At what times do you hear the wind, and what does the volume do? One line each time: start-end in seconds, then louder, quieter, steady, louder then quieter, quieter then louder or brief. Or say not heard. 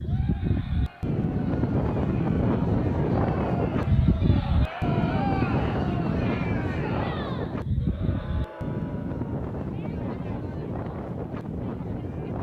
0.0-12.3 quieter.